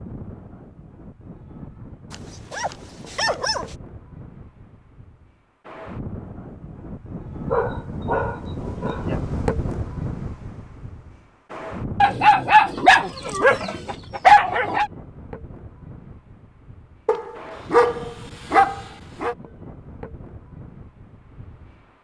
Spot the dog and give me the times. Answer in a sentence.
The dog can be heard from 2.1 to 3.8 s, from 7.5 to 9.2 s, from 12.0 to 14.9 s and from 17.1 to 19.4 s.